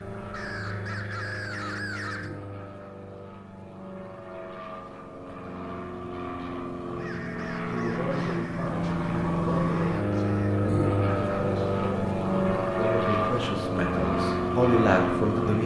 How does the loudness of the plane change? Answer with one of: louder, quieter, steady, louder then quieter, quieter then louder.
louder.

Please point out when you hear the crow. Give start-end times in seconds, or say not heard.
0.0-2.3, 7.0-10.7.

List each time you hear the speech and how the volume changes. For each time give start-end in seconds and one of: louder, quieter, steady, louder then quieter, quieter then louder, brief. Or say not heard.
7.7-15.6 louder.